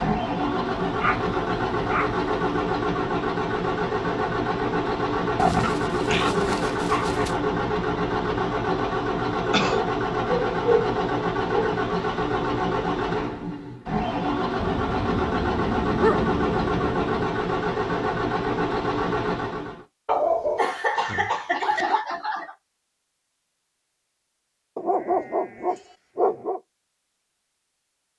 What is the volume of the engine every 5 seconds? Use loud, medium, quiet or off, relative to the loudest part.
loud, loud, loud, loud, off, off.